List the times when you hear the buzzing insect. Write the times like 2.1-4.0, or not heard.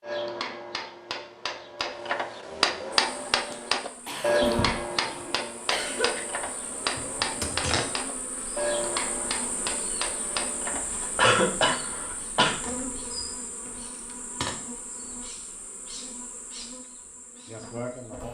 2.9-18.2.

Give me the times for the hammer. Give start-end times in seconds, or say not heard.
0.0-11.0.